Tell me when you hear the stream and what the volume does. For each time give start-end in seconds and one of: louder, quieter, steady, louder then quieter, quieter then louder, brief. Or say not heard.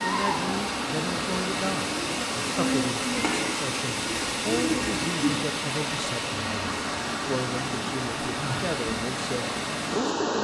0.0-10.3 steady.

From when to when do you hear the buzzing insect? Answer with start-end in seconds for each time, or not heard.
0.0-5.5.